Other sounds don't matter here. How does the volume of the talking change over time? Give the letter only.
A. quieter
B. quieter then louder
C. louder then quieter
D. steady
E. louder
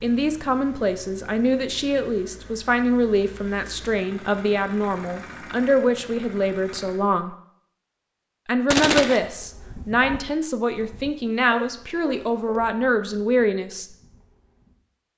D.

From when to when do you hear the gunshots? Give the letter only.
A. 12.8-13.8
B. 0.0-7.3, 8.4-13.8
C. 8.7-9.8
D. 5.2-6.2
C.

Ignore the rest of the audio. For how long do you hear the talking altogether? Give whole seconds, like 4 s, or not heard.
13 s.